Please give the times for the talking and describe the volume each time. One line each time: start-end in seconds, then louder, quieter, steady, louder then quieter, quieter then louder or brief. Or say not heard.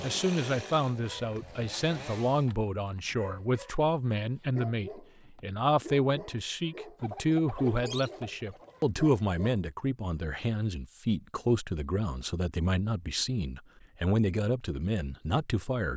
0.0-15.9 steady.